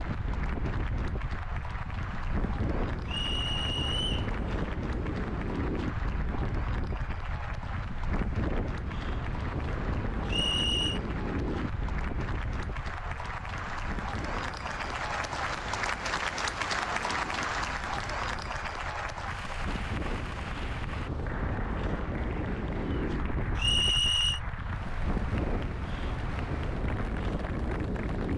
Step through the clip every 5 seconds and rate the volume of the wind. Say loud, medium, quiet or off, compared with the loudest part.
loud, loud, loud, medium, loud, loud.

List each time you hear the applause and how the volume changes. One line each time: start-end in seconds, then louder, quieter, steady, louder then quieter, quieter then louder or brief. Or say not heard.
0.0-28.3 louder then quieter.